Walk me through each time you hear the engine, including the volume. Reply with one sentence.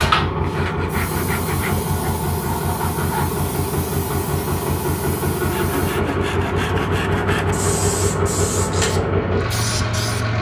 The engine can be heard from 0.0 to 10.3 s, at a steady volume.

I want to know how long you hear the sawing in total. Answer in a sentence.
The sawing can be heard for 5 seconds in total.